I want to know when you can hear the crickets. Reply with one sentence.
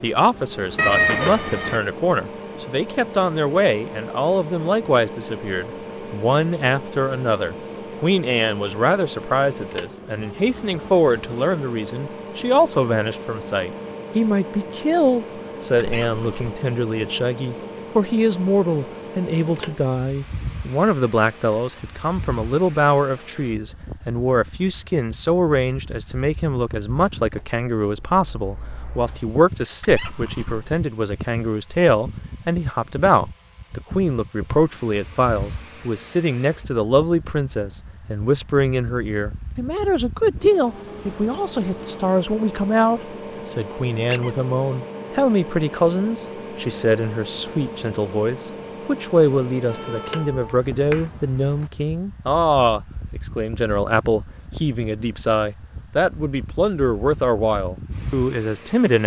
The crickets can't be heard in this clip.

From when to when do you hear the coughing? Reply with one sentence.
The coughing can't be heard in this clip.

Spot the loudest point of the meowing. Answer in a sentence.
The volume of the meowing peaks at 1 second.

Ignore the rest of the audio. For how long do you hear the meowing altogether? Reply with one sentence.
You can hear the meowing for 3 seconds altogether.